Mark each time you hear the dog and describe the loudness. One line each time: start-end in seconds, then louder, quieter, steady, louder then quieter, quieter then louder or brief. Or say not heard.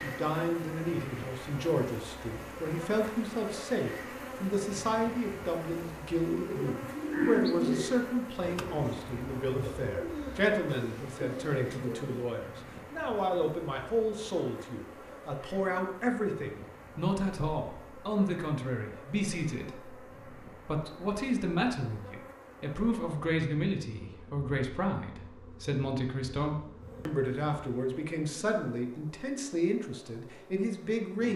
not heard.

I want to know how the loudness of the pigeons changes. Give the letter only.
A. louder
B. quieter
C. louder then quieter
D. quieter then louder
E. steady
B.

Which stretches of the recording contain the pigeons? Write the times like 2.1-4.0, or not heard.
6.2-12.2.